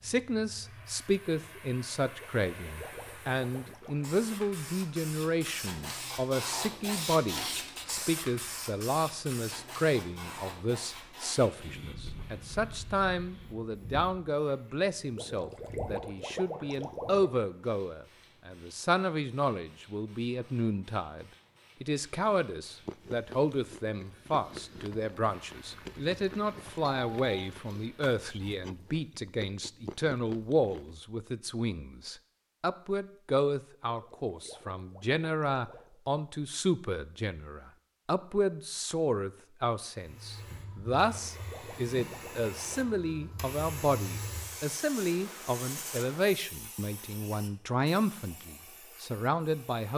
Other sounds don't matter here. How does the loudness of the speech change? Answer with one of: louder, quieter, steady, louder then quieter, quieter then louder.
steady.